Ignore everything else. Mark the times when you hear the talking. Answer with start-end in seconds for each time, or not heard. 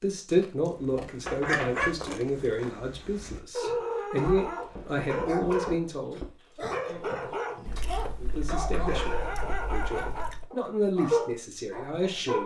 0.0-6.2, 8.2-12.4.